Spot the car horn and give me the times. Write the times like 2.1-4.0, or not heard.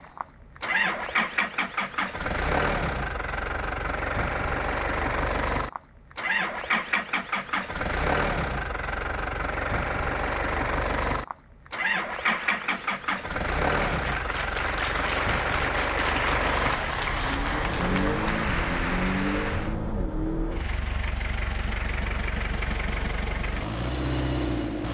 not heard.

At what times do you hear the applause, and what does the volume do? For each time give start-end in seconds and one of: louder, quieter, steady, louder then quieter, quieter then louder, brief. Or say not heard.
12.2-19.8 louder.